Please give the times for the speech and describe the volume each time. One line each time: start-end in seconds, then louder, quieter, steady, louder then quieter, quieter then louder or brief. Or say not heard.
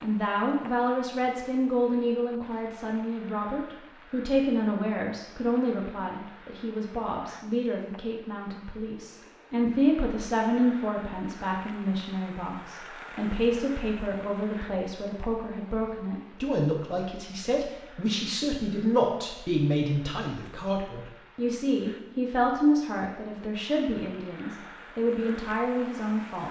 0.0-26.4 steady.